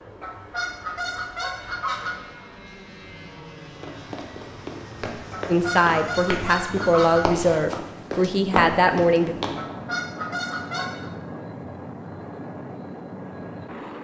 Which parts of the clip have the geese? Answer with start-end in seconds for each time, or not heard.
0.2-2.2, 5.3-7.3, 9.6-11.1.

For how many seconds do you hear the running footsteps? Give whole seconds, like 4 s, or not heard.
6 s.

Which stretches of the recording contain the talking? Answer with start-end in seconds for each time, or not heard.
5.5-9.3.